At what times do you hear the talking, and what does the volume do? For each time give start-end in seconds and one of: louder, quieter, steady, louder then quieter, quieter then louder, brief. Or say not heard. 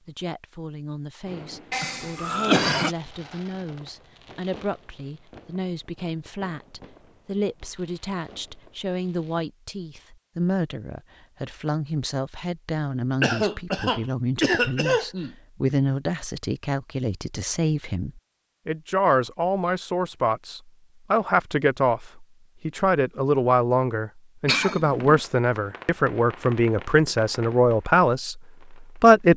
0.1-29.3 louder.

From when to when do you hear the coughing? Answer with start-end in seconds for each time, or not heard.
1.7-3.0, 13.2-15.3, 24.4-25.2.